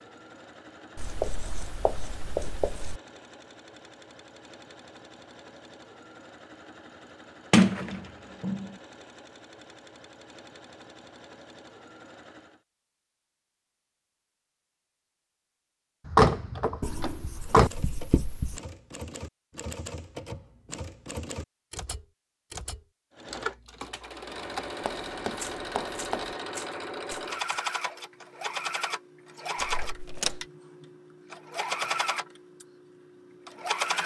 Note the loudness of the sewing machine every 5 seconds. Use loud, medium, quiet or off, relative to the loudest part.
quiet, quiet, quiet, off, medium, loud, loud.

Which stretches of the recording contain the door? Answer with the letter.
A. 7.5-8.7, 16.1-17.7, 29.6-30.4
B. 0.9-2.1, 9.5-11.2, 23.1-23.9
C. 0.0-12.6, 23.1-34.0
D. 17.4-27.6
A.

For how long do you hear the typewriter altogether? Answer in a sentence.
You can hear the typewriter for 10 seconds altogether.